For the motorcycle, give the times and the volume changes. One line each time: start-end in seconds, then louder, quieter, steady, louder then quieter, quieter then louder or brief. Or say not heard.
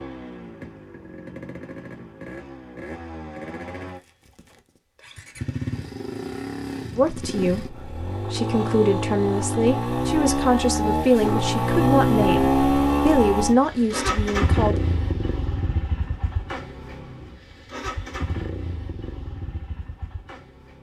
0.0-20.7 louder then quieter.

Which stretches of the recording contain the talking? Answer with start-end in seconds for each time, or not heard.
7.0-14.8.